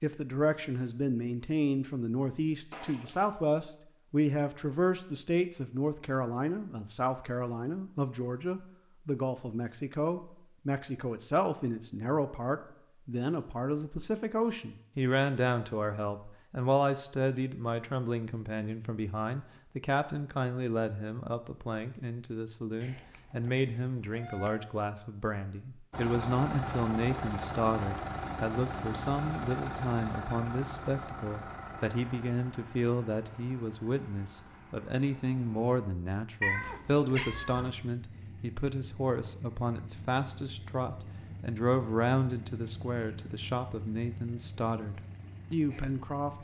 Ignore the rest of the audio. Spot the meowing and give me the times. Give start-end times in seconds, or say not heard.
2.7-3.4, 22.8-24.7, 36.4-37.7.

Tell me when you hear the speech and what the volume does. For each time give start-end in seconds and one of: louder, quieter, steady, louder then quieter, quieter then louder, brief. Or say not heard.
0.0-46.3 steady.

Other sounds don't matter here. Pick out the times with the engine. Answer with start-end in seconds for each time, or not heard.
25.9-46.3.